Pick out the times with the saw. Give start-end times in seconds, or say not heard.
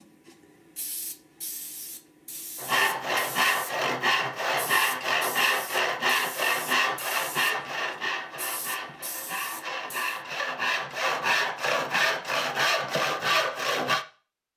2.5-14.1.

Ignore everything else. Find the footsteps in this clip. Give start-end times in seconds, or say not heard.
not heard.